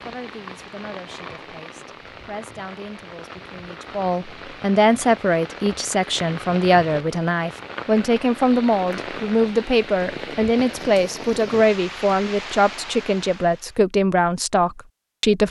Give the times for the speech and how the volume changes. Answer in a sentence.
The speech can be heard from 0.0 to 15.4 s, getting louder.